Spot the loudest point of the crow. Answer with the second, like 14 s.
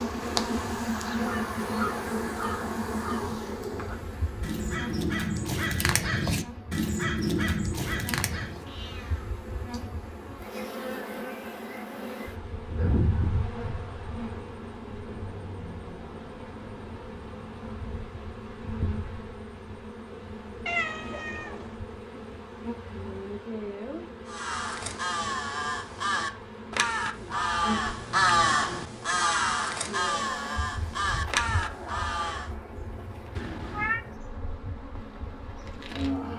28 s.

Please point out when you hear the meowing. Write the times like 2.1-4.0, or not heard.
8.7-9.8, 20.6-21.9, 33.4-34.0.